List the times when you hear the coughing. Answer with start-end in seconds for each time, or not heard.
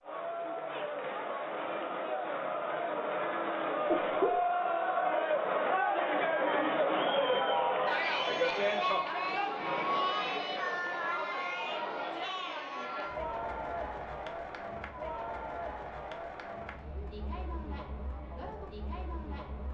3.9-4.5.